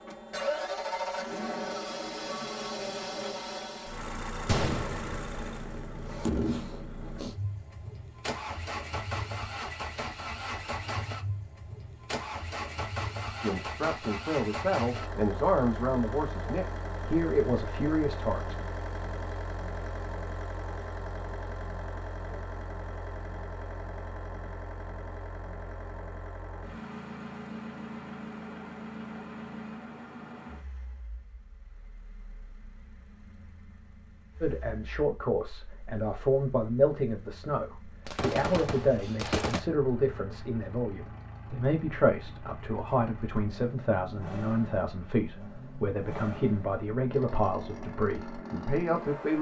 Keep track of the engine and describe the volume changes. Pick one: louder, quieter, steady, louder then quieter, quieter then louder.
quieter then louder.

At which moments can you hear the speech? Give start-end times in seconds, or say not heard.
13.4-18.6, 34.4-49.3.